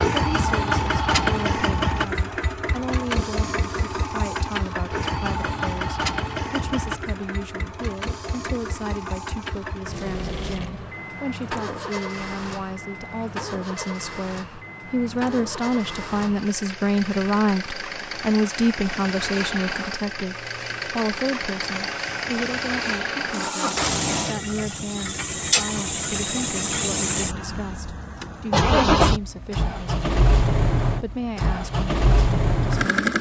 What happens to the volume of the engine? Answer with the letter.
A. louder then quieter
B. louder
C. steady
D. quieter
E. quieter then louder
E.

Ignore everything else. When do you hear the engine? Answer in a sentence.
The engine can be heard from 0.0 to 33.1 s.